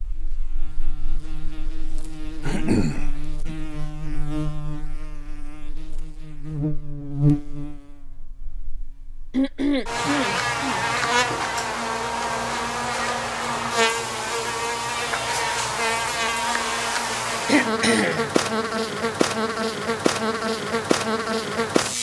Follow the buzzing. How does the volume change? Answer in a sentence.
The loudness of the buzzing goes up.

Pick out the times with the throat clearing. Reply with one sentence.
You can hear the throat clearing from 2.5 to 3.5 s, from 9.3 to 10.8 s and from 17.4 to 18.3 s.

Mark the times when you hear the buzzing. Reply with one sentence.
The buzzing can be heard from 0.0 to 21.9 s.